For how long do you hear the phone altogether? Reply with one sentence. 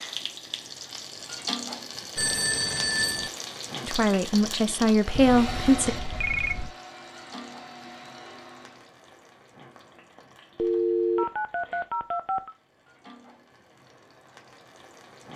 You can hear the phone for 5 seconds altogether.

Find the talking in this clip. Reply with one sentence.
You can hear the talking from 3.8 to 6.0 s.